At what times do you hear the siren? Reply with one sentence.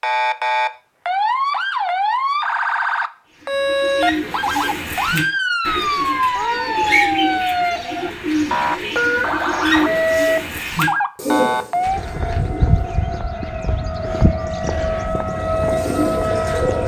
The siren can be heard from 0.0 to 16.8 s.